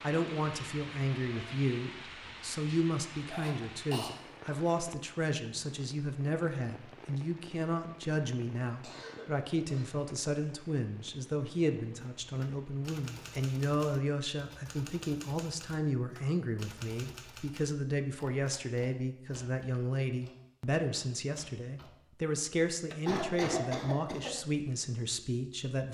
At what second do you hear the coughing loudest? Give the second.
24 s.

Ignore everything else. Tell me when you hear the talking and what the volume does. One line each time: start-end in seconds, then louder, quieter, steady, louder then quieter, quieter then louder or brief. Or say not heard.
0.0-25.8 steady.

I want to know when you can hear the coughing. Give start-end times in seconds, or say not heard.
3.3-4.1, 8.8-9.9, 23.1-24.4.